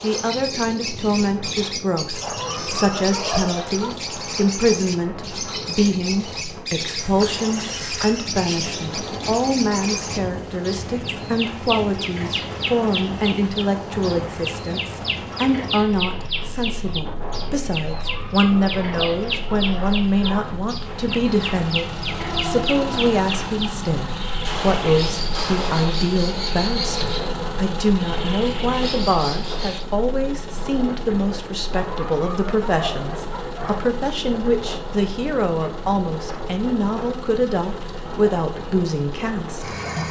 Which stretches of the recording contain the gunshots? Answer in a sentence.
You can hear the gunshots from 24.4 to 25.9 s.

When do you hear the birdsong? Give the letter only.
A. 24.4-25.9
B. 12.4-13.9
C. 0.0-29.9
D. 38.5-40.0
C.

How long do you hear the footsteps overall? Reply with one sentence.
The footsteps can't be heard in this clip.